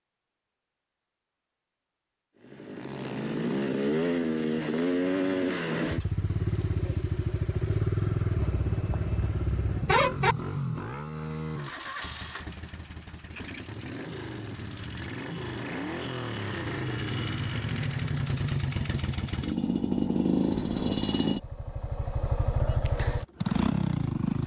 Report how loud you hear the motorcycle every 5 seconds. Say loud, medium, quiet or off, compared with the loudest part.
loud, loud, medium, loud, loud.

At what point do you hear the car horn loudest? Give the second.
10 s.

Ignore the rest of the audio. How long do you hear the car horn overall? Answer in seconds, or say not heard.
2 s.